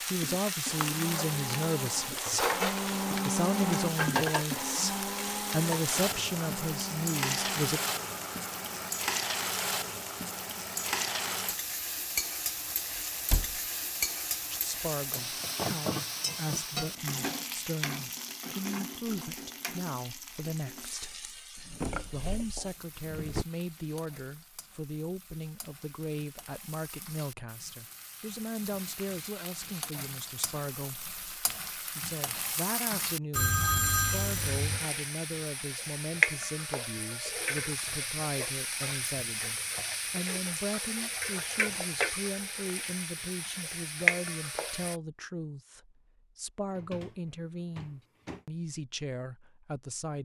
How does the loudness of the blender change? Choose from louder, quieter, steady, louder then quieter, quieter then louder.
louder then quieter.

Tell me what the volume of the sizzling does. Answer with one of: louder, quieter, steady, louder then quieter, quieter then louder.
quieter then louder.